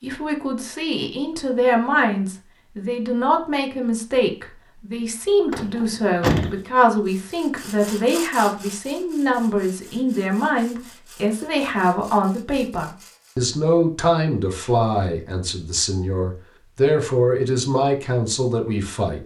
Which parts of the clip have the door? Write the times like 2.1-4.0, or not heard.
5.5-6.6.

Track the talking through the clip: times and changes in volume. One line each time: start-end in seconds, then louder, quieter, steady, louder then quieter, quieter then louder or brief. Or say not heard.
0.0-19.2 steady.